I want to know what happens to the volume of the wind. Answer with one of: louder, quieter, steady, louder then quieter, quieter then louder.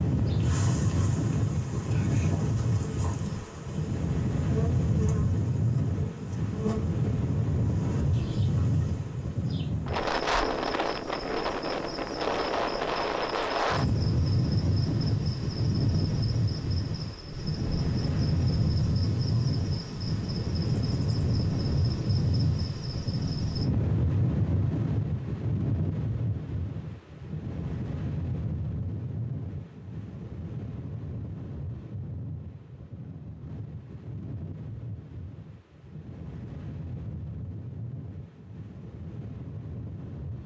quieter.